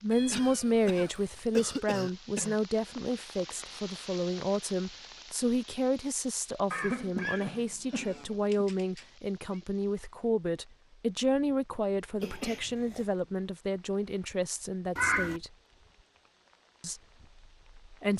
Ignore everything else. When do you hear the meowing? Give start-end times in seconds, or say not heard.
0.1-1.6, 7.8-9.6, 14.9-15.4.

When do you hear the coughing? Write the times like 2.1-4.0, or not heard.
0.3-2.6, 6.7-8.7, 12.2-13.1.